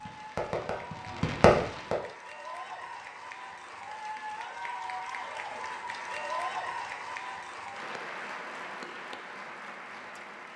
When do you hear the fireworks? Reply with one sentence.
The fireworks can be heard from 0.0 to 1.9 s.